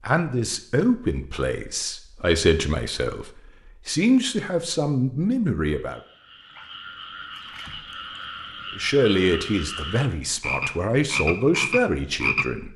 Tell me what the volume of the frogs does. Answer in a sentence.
The loudness of the frogs goes up.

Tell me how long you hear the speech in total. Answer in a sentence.
The speech can be heard for 10 seconds in total.